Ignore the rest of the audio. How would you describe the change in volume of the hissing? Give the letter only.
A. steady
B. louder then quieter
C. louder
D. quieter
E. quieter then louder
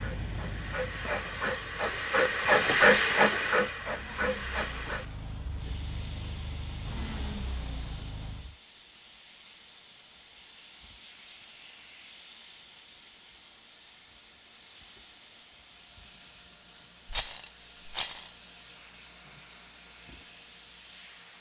D.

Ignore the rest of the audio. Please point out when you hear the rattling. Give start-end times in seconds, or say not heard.
17.1-18.3.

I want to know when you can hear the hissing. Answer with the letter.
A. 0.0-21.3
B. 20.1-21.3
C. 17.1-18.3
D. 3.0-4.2
A.